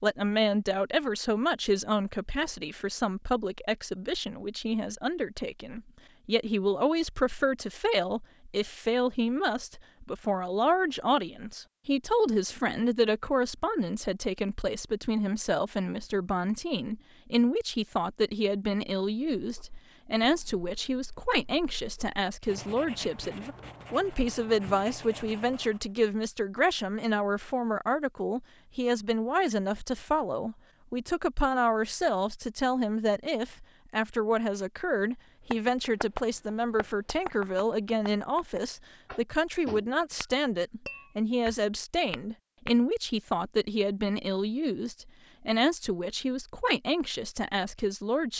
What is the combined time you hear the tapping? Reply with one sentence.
The tapping can be heard for 7 seconds in total.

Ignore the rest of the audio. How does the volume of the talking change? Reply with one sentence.
The volume of the talking stays about the same.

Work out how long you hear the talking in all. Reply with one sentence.
The talking can be heard for 48 seconds in total.